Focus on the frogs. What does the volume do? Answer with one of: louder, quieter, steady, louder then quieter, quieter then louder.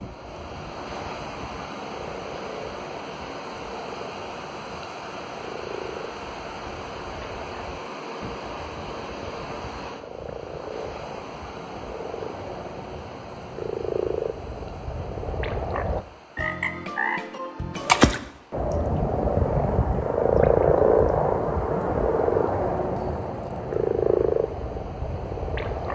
louder.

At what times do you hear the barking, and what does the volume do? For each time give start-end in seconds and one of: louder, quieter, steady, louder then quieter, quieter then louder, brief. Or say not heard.
not heard.